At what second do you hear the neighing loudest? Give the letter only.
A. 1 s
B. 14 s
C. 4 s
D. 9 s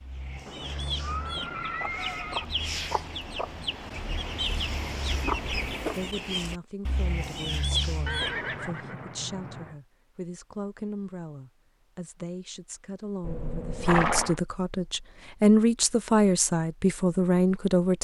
B.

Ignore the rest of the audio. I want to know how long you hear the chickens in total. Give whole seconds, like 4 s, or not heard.
9 s.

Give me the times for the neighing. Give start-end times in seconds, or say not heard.
0.5-2.5, 8.1-9.8, 13.2-14.3.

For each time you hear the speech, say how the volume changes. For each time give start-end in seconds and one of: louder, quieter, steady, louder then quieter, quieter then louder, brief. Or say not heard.
5.8-18.0 louder.